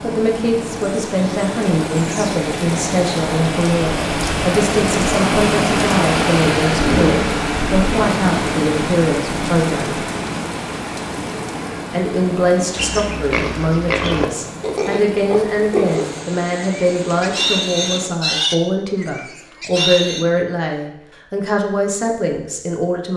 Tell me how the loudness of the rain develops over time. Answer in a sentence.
The loudness of the rain goes up, then down.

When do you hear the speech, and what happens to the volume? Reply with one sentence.
The speech can be heard from 0.0 to 10.0 s, at a steady volume; and from 11.9 to 23.1 s, at a steady volume.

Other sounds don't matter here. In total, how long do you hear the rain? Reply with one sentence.
The rain can be heard for 18 seconds in total.